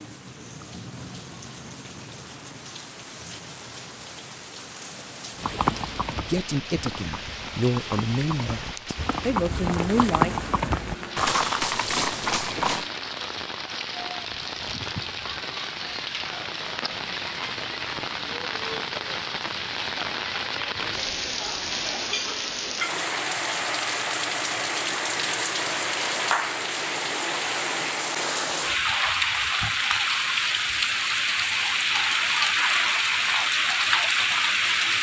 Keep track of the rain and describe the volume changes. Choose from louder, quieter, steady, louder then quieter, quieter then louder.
louder.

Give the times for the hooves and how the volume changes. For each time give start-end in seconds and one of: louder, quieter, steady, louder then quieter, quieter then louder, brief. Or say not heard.
5.3-12.9 louder.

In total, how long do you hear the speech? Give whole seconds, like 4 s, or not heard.
4 s.